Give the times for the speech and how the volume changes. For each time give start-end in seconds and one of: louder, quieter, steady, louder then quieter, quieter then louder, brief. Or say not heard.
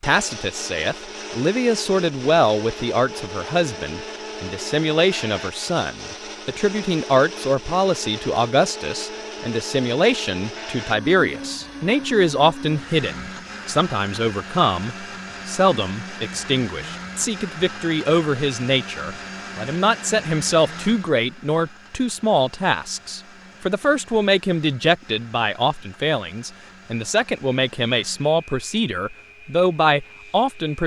0.0-30.8 steady.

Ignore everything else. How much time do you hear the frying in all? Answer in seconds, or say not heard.
not heard.